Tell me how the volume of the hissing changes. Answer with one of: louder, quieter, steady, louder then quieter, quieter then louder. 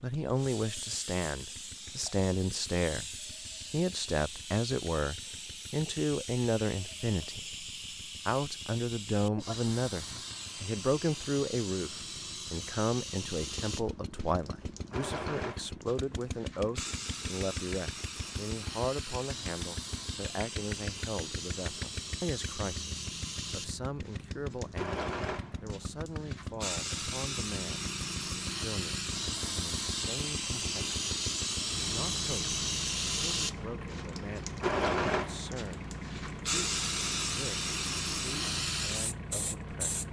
louder.